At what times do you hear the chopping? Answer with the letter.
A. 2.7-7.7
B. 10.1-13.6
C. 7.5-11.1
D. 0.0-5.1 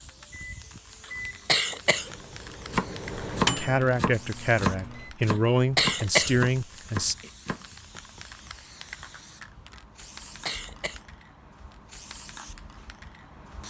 A.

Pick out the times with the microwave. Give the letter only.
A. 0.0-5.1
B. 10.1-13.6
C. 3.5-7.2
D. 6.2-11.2
A.